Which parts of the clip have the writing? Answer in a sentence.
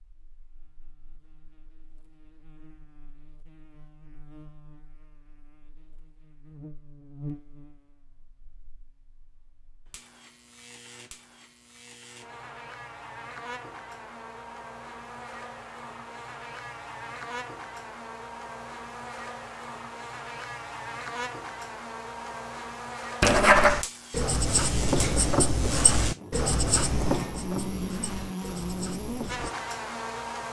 The writing can be heard from 23.2 to 29.5 s.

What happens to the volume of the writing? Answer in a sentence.
The volume of the writing goes down.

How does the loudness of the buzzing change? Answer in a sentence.
The loudness of the buzzing goes up.